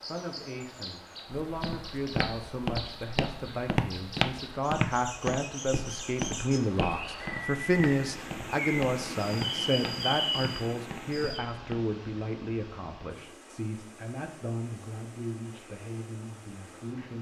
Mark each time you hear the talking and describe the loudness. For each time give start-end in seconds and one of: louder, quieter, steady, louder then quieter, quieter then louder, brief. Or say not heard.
0.0-17.1 louder then quieter.